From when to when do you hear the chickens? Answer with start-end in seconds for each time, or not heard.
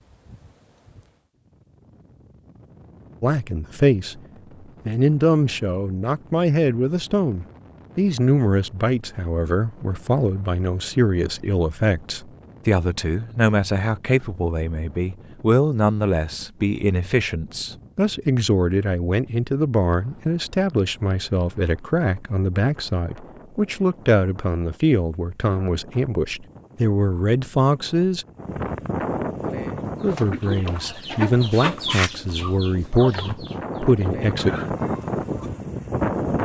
29.8-35.6.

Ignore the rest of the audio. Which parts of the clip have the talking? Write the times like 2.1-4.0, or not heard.
3.2-4.2, 4.8-28.2, 30.0-34.5.